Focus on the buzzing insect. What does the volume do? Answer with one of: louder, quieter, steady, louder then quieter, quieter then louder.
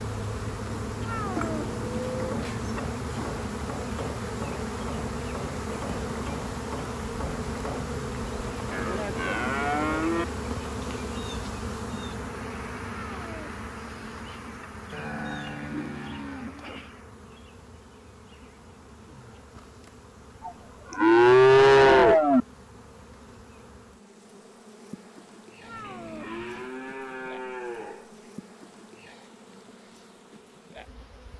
quieter.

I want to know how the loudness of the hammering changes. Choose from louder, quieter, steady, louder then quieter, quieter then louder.
steady.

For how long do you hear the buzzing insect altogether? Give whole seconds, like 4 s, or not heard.
31 s.